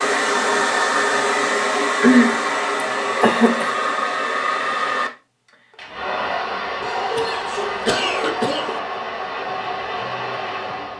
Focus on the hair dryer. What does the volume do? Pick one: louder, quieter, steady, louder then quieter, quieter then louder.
quieter.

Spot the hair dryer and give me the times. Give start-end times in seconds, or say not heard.
0.0-10.9.